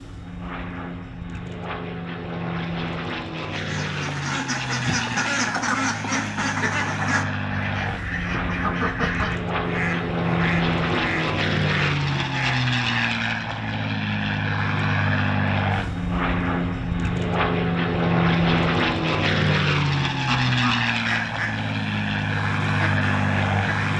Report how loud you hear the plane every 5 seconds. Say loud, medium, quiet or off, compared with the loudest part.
medium, medium, loud, loud, loud.